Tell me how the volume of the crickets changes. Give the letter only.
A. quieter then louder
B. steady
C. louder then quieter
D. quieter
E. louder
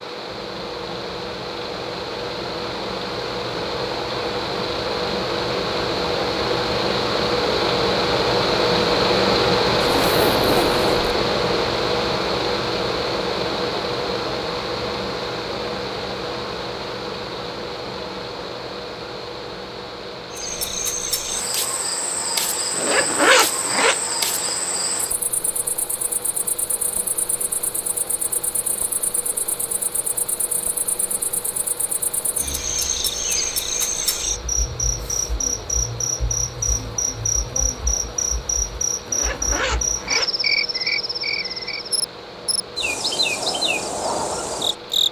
A.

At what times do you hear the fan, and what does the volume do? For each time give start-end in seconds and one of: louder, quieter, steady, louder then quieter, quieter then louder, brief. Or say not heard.
0.0-45.0 quieter.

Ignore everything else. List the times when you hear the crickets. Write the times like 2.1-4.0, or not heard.
20.3-45.0.